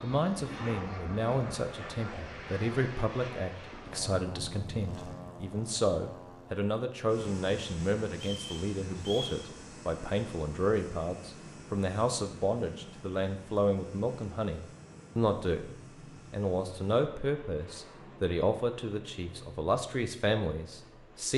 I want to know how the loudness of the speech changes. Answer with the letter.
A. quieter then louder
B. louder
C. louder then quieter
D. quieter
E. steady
E.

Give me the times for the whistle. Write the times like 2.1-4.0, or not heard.
8.1-9.4.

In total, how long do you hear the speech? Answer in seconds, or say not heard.
21 s.